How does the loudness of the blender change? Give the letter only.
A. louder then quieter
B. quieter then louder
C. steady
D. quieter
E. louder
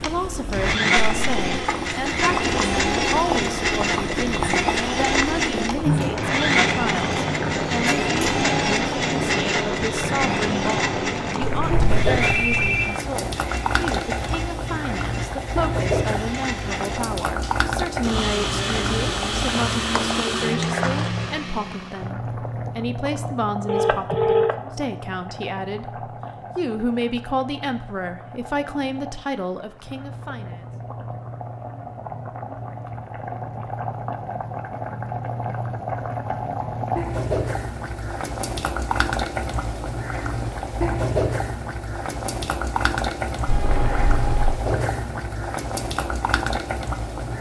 B.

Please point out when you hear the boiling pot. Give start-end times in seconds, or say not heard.
0.0-47.3.